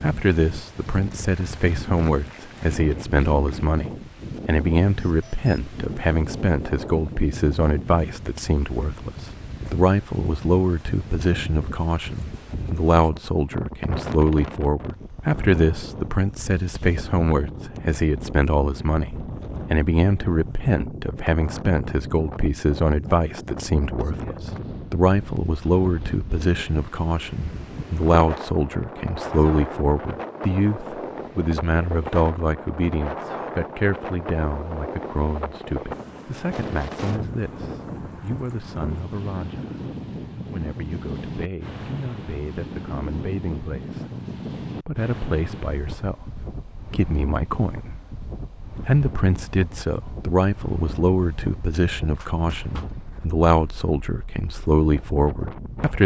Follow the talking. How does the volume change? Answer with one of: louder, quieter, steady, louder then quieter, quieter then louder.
quieter then louder.